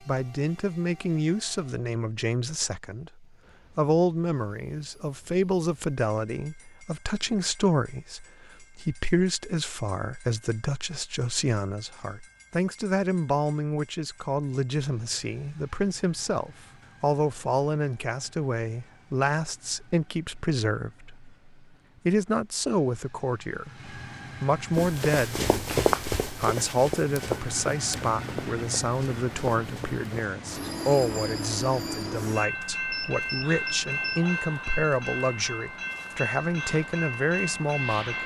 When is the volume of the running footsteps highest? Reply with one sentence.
The volume of the running footsteps peaks at 26 seconds.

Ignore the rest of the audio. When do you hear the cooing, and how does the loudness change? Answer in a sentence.
The cooing can't be heard in this clip.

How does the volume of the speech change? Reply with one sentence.
The loudness of the speech stays about the same.